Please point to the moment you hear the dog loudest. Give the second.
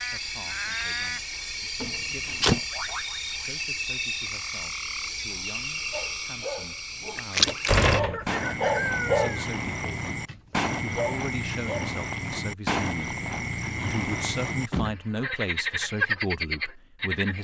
9 s.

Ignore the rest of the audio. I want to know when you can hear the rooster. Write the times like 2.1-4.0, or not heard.
8.1-9.4.